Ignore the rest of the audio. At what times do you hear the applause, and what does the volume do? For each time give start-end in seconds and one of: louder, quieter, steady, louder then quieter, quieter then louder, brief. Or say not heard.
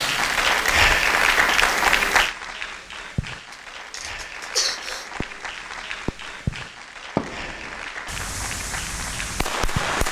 0.0-10.0 quieter.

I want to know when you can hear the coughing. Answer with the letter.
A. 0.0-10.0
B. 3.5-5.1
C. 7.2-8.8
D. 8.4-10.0
B.